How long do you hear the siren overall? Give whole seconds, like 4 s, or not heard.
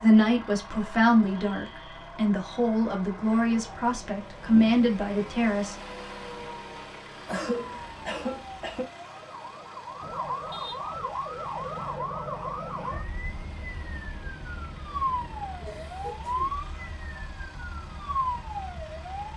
19 s.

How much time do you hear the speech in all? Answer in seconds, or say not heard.
6 s.